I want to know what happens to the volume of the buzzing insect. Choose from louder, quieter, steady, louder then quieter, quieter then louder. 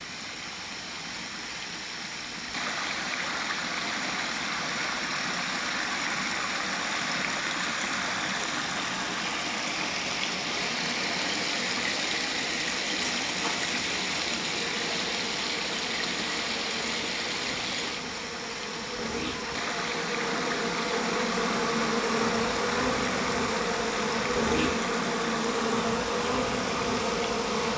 louder.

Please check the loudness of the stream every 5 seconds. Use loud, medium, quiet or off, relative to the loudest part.
loud, loud, loud, loud, loud, medium.